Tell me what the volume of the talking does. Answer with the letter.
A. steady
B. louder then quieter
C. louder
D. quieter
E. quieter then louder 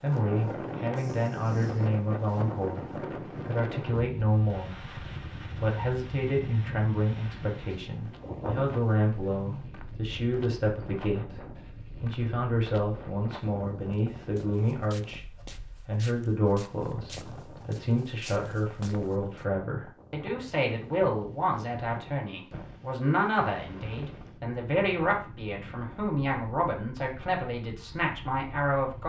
A.